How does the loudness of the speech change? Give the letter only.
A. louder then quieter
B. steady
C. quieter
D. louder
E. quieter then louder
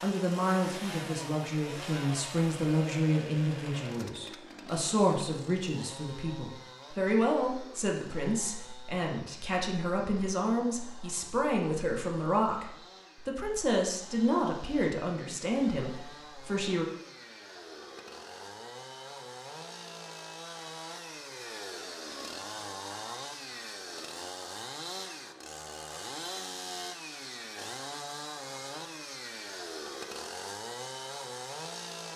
B.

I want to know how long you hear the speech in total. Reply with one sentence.
You can hear the speech for 17 seconds altogether.